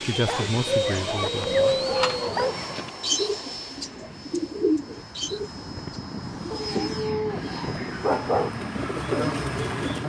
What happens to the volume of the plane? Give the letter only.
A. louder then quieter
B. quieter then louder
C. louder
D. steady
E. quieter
B.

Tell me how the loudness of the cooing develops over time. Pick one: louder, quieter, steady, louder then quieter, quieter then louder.
quieter then louder.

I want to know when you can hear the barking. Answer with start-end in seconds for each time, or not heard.
0.1-2.7, 6.5-8.5.